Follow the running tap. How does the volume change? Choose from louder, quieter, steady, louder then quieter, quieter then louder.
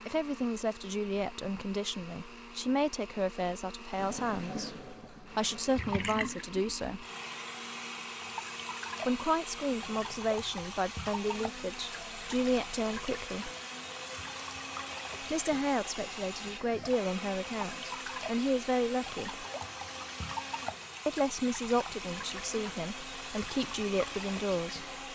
steady.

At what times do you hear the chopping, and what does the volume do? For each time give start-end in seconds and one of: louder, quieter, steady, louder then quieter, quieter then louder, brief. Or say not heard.
not heard.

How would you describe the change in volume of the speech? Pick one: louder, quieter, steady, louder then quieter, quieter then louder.
steady.